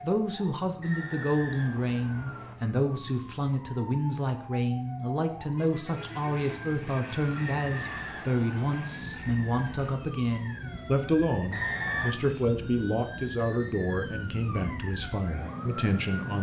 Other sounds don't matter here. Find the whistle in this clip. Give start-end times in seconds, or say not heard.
0.8-2.5, 7.3-9.0, 11.5-12.2.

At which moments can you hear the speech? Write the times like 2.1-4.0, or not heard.
0.0-16.3.